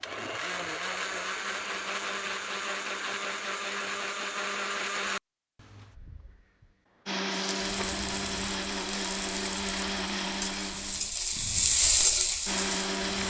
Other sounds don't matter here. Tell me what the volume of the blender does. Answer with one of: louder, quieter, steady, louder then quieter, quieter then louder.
steady.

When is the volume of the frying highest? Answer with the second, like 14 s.
12 s.